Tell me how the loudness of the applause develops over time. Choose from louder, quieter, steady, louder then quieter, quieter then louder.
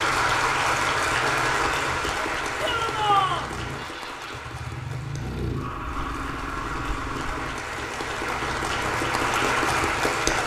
quieter then louder.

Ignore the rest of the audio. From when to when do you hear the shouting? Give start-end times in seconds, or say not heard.
2.6-3.5.